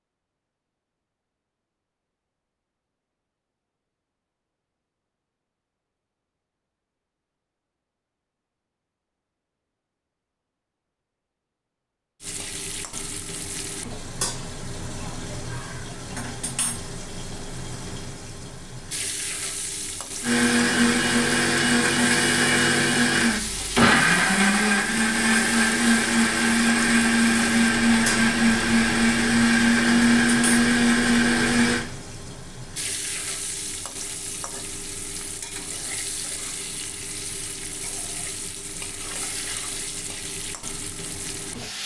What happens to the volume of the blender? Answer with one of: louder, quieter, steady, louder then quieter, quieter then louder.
steady.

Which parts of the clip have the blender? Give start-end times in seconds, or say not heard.
20.2-31.9.